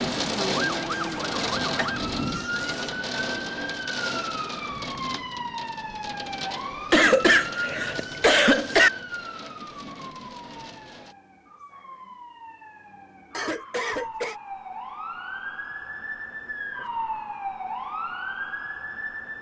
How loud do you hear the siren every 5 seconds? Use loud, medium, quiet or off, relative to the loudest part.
loud, loud, medium, loud.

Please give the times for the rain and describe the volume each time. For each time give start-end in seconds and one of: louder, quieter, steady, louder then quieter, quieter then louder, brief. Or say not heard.
0.0-11.2 quieter.